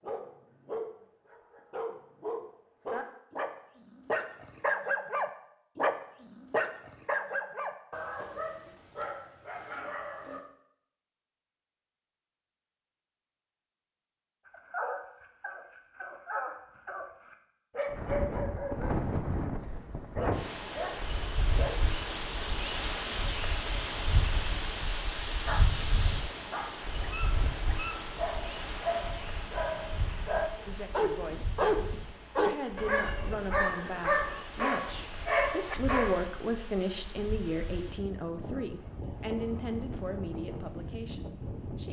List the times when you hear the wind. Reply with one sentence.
The wind can be heard from 17.9 to 41.8 s.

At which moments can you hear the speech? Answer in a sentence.
The speech can be heard from 30.6 to 41.8 s.